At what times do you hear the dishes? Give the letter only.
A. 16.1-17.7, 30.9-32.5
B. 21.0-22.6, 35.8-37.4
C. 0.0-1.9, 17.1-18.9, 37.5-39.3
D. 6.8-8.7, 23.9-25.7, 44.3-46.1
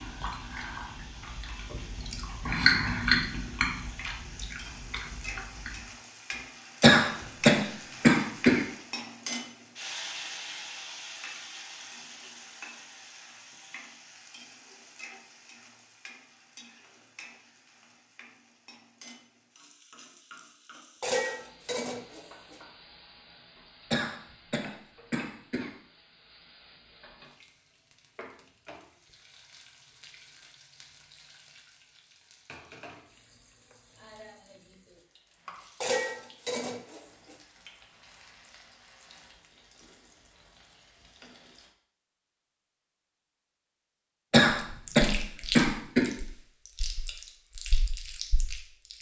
B.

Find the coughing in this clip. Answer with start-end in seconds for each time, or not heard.
6.8-8.7, 23.9-25.7, 44.3-46.1.